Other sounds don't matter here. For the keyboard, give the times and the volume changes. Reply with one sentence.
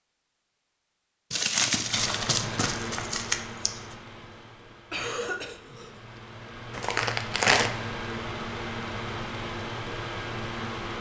You can't hear the keyboard here.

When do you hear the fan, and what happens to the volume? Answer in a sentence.
The fan can be heard from 1.8 to 10.9 s, getting quieter then louder.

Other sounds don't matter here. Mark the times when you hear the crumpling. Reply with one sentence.
The crumpling can be heard from 1.3 to 4.0 s and from 6.7 to 7.7 s.